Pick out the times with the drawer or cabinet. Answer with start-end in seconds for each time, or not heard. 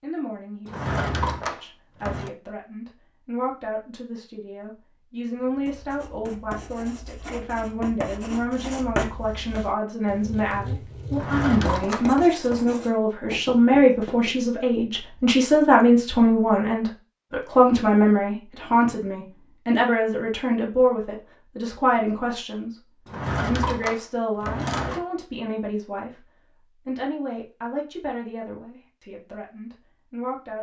0.7-2.3, 11.1-12.6, 23.1-25.0.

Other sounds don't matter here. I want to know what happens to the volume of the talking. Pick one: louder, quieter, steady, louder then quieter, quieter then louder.
louder then quieter.